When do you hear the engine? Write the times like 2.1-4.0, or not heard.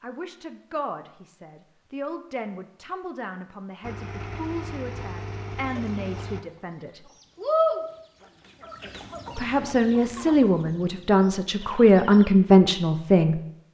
3.8-6.5.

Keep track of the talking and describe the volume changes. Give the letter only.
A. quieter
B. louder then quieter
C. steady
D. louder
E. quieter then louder
D.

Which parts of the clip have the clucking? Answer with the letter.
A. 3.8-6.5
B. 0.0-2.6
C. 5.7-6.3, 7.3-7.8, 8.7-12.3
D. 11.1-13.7
C.